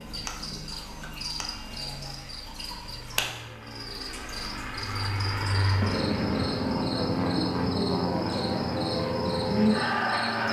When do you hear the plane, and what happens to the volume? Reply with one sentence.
You can hear the plane from 0.0 to 10.4 s, getting louder.